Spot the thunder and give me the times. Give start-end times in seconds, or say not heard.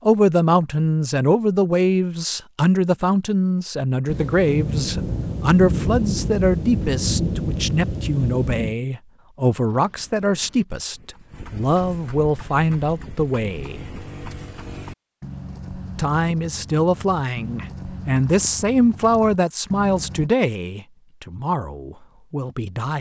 4.0-8.8.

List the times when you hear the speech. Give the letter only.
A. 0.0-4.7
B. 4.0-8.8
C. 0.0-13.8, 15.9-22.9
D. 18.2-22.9
C.